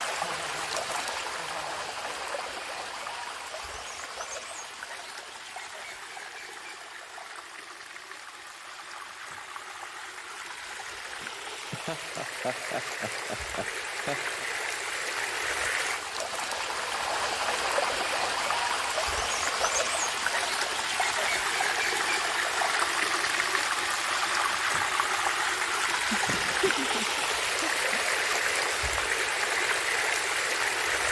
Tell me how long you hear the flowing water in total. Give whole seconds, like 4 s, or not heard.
31 s.